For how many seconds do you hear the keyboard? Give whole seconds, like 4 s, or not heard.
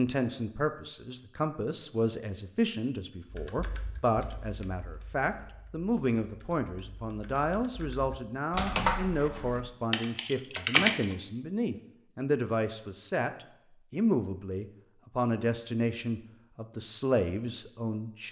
8 s.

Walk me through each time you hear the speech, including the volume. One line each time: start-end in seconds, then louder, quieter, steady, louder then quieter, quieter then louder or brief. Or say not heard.
0.0-18.2 steady.